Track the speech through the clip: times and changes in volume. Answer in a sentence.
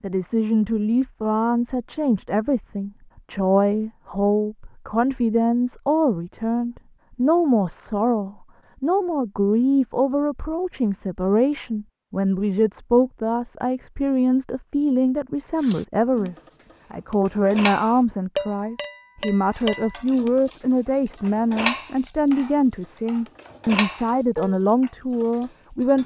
The speech can be heard from 0.0 to 26.0 s, at a steady volume.